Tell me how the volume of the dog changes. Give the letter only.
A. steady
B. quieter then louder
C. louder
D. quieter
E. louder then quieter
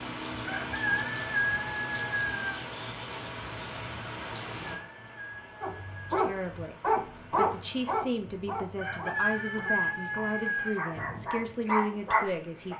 B.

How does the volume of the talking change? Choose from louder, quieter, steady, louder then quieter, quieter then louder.
louder.